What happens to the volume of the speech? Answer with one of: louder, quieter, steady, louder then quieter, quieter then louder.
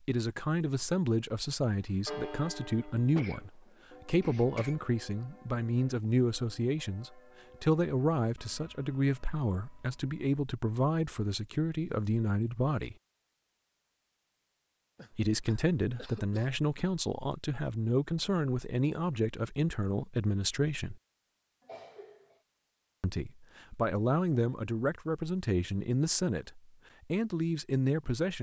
steady.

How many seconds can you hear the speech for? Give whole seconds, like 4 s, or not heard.
24 s.